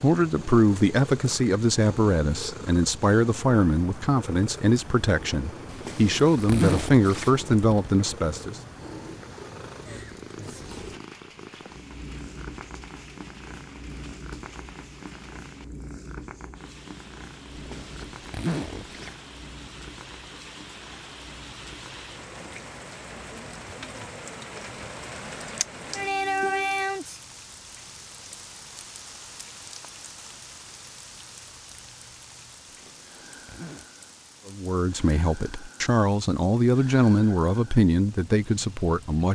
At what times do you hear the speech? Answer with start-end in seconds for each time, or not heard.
0.0-8.6, 34.5-39.3.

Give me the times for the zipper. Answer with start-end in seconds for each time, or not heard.
5.7-7.9, 17.5-19.1, 32.6-33.9.